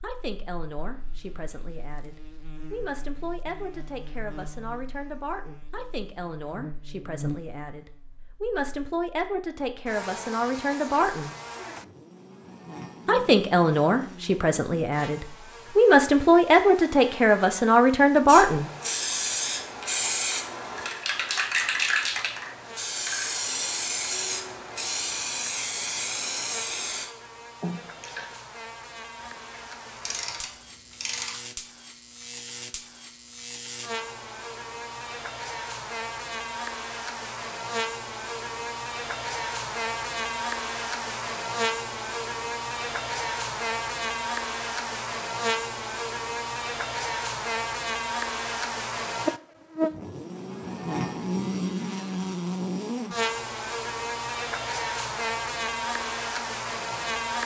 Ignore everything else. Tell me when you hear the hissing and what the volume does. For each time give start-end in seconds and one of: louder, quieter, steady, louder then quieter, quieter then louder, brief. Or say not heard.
18.2-27.1 steady.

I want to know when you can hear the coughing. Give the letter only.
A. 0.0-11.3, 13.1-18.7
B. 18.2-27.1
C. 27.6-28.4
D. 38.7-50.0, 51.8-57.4
C.